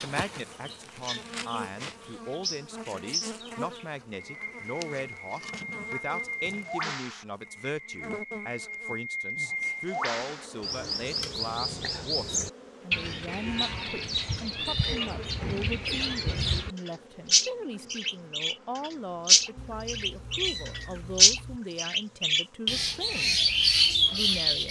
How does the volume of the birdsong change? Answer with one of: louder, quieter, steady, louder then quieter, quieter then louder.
louder.